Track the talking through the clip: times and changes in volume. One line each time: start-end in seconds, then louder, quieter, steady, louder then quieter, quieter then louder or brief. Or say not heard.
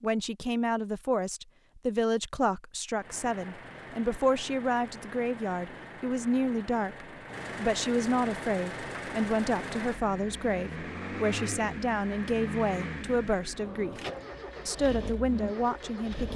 0.0-14.0 steady
14.7-16.3 brief.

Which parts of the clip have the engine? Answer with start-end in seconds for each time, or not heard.
2.9-16.3.